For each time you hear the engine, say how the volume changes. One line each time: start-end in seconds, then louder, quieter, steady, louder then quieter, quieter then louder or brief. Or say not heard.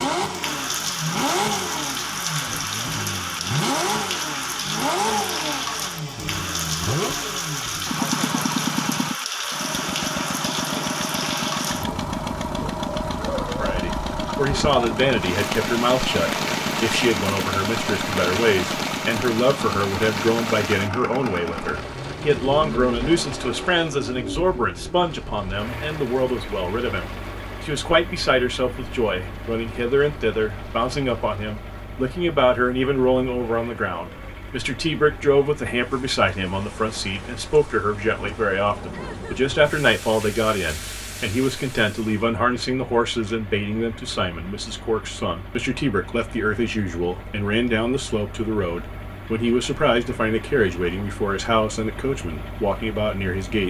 0.0-53.6 quieter.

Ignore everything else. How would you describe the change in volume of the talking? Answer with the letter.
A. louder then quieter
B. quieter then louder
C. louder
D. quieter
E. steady
E.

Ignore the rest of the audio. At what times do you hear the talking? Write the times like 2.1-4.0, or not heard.
13.6-53.6.